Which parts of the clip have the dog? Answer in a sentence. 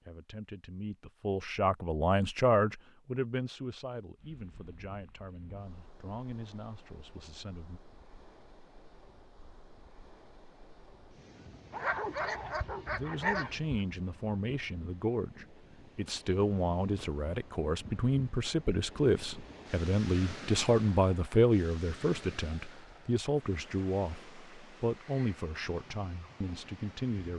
The dog can be heard from 11.7 to 13.6 s.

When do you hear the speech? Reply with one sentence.
You can hear the speech from 0.1 to 7.8 s and from 12.9 to 27.3 s.